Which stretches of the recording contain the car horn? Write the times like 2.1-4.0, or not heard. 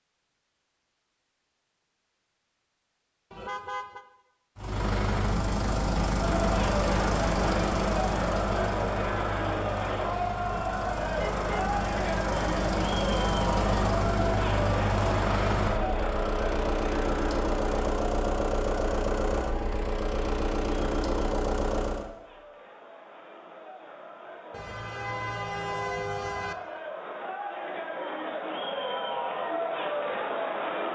3.3-4.0, 11.2-11.7, 24.5-26.6.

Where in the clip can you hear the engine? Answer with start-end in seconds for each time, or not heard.
4.5-22.1.